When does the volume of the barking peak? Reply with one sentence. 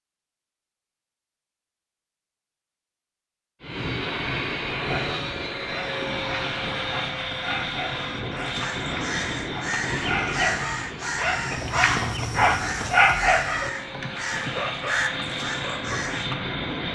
The loudest moment of the barking is at 13 seconds.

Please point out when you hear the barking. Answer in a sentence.
The barking can be heard from 4.8 to 16.5 s.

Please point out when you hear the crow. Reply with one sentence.
You can hear the crow from 8.4 to 16.3 s.